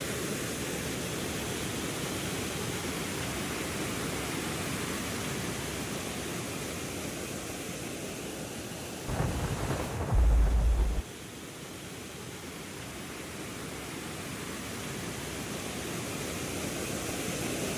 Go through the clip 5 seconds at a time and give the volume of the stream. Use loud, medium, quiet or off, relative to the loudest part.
loud, loud, medium, loud.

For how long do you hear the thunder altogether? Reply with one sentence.
The thunder can be heard for 2 seconds in total.